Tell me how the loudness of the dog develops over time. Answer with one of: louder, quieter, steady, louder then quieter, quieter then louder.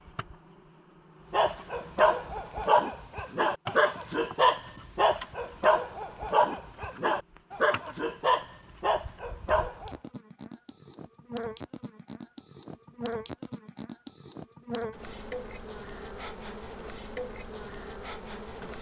steady.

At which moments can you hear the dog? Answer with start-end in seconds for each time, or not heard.
1.3-9.9.